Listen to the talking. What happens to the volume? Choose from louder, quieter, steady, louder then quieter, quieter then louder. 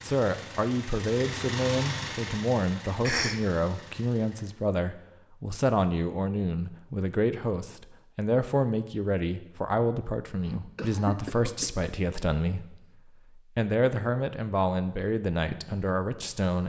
steady.